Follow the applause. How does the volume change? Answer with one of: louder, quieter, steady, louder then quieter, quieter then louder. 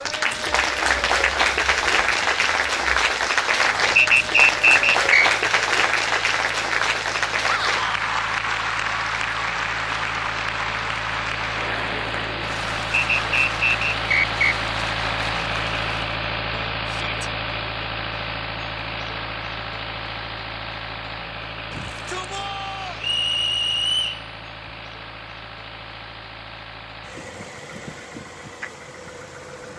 quieter.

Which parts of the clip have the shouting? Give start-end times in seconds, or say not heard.
7.4-7.8, 16.9-17.3, 21.7-23.1.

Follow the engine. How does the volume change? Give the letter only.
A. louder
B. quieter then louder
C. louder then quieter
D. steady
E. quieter
C.